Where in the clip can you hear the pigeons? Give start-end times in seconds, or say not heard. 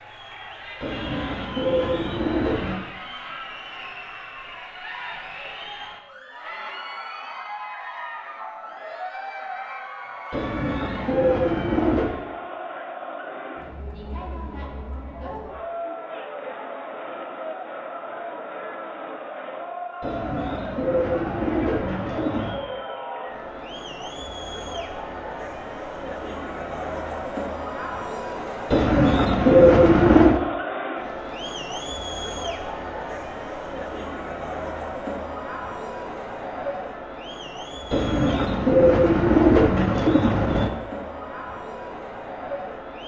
0.8-2.8, 10.3-12.2, 20.0-22.6, 28.7-30.4, 37.9-40.7.